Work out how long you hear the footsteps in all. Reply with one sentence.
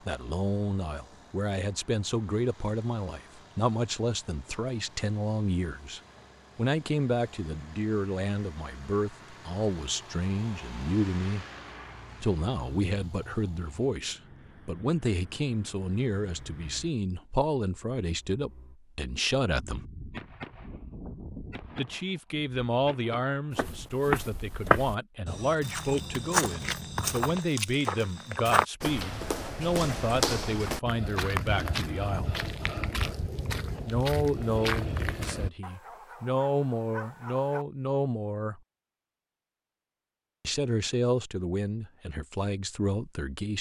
The footsteps can be heard for 12 seconds in total.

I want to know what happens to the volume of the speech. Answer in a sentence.
The loudness of the speech stays about the same.